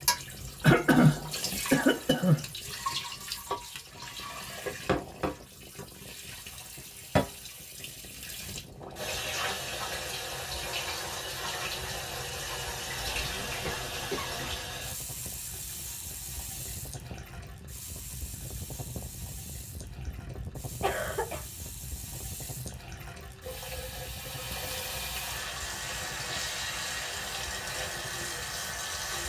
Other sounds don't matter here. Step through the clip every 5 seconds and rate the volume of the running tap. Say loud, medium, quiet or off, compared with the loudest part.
loud, loud, loud, medium, medium, loud.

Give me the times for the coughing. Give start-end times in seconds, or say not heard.
0.6-2.5, 13.1-14.4, 20.8-21.4.